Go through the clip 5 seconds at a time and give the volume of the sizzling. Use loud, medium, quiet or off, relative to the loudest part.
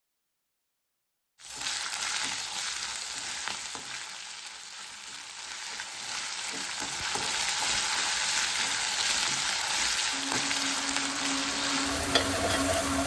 medium, loud, loud.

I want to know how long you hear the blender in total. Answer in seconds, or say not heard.
3 s.